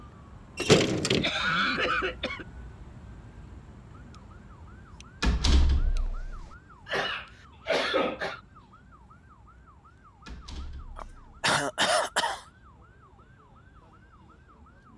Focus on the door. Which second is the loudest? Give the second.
1 s.